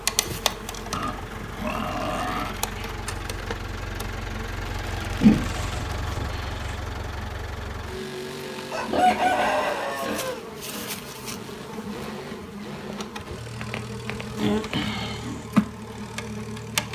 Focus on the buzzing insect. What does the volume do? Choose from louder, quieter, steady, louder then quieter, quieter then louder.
quieter then louder.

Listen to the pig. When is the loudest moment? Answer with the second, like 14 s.
5 s.